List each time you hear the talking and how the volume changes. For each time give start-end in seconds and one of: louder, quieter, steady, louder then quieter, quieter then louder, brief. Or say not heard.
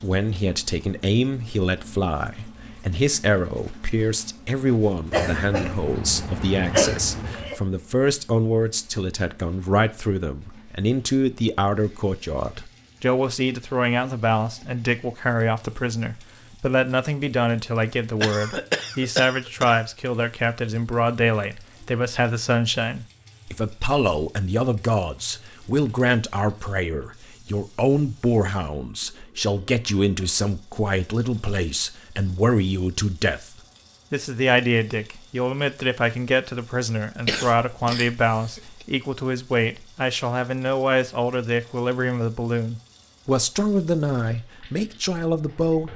0.0-33.5 steady
34.1-45.9 steady.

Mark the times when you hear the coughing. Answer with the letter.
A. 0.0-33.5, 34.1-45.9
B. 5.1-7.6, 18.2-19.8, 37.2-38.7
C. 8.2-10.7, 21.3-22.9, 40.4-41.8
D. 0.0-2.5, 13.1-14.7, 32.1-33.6
B.